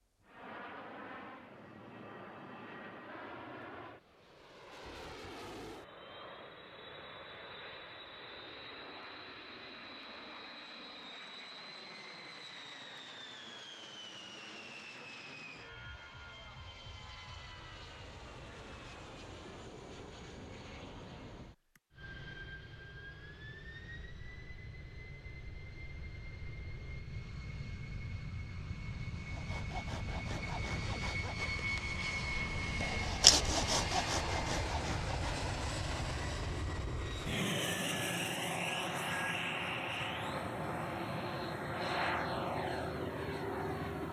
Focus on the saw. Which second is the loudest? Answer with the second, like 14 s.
33 s.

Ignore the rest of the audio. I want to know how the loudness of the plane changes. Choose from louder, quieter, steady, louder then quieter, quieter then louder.
louder.